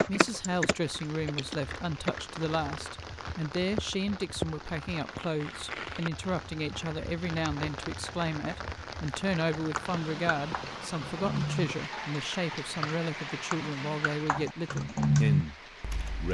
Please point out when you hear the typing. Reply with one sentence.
You can hear the typing from 0.0 to 2.2 s and from 9.6 to 16.2 s.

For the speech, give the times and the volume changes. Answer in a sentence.
The speech can be heard from 0.0 to 15.6 s, at a steady volume.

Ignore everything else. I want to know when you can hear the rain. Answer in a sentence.
The rain can be heard from 0.0 to 16.2 s.